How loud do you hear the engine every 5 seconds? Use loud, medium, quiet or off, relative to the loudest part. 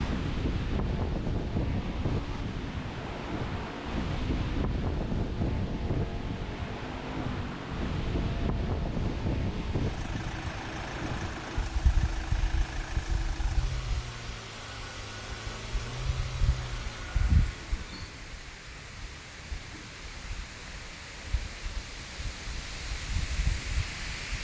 loud, loud, loud, loud, off.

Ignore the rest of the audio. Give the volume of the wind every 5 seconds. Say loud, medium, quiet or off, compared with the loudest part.
loud, loud, medium, medium, medium.